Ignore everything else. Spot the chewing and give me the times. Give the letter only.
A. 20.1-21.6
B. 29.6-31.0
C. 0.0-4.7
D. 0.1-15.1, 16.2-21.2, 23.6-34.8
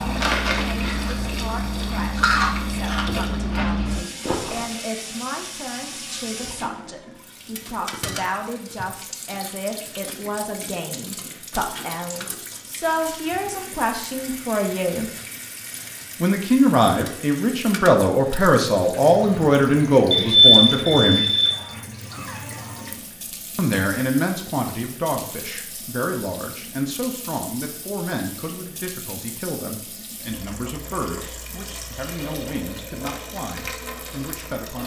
C.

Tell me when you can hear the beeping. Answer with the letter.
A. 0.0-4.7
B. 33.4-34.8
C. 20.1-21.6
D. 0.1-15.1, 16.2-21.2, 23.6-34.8
C.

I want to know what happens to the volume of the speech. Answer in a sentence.
The loudness of the speech goes up, then down.